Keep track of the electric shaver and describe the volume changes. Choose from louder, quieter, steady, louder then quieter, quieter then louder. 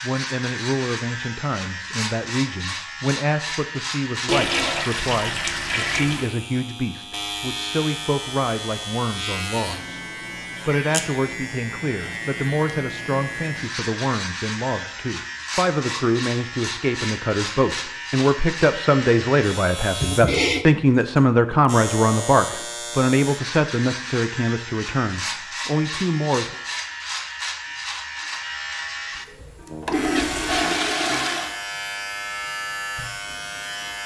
steady.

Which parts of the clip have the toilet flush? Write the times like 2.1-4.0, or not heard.
4.2-6.3, 20.0-20.6, 29.6-31.6.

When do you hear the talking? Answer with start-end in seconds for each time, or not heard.
0.0-10.0, 10.7-26.6.